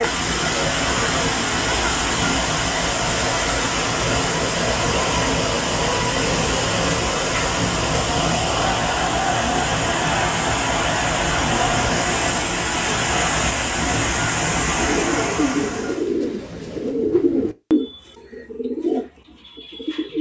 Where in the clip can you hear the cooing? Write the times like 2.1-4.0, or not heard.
13.8-20.1.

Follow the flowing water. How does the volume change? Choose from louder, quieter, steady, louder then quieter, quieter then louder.
steady.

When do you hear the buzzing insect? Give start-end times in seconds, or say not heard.
not heard.